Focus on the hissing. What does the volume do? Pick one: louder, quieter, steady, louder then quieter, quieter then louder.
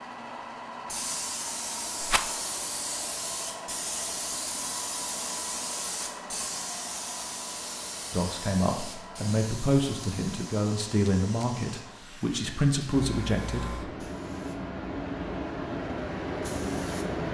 quieter then louder.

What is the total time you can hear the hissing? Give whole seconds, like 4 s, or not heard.
17 s.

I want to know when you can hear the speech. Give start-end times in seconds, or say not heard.
8.1-13.9.